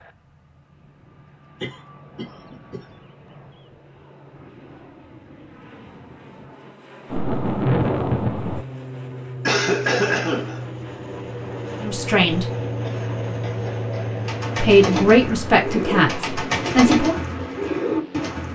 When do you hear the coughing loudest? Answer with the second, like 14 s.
10 s.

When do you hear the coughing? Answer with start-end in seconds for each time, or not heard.
1.6-2.8, 9.4-10.6, 12.8-14.1.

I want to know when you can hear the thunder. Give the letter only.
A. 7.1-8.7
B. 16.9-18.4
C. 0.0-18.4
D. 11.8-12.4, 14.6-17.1
A.